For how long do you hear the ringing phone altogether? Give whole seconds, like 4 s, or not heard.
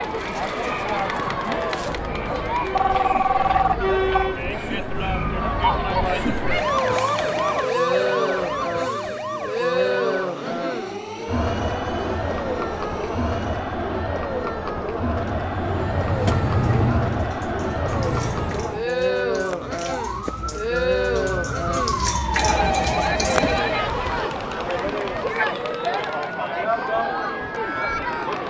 4 s.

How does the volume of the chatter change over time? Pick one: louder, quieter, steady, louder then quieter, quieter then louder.
steady.